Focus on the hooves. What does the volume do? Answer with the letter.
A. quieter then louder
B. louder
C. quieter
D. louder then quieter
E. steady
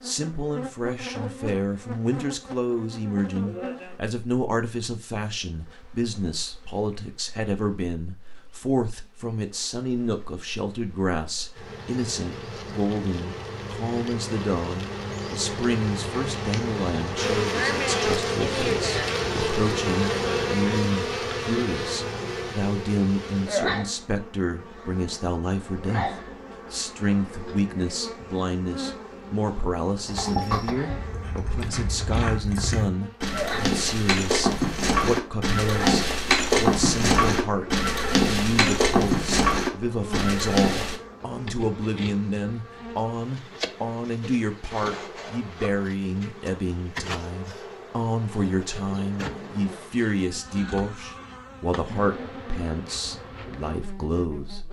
B.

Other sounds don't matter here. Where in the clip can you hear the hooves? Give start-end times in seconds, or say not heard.
30.1-41.0.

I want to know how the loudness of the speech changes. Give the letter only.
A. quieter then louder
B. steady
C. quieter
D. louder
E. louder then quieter
B.